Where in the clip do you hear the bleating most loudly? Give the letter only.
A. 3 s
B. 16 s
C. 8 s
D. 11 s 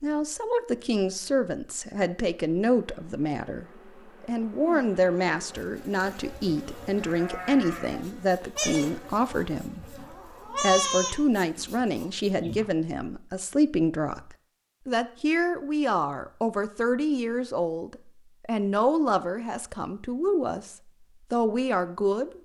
D.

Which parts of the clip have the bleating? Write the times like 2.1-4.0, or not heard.
6.8-12.7.